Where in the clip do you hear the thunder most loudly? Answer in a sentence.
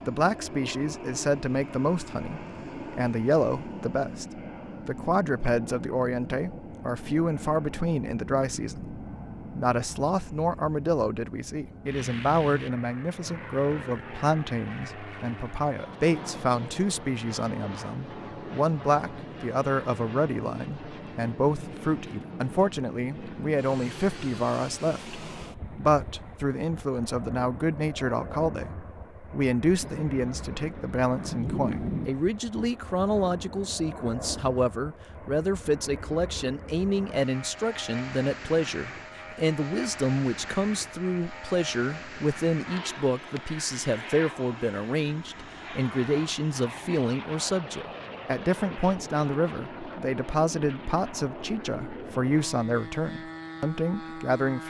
The volume of the thunder peaks at 32 seconds.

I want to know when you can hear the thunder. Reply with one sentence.
The thunder can be heard from 29.8 to 32.0 s.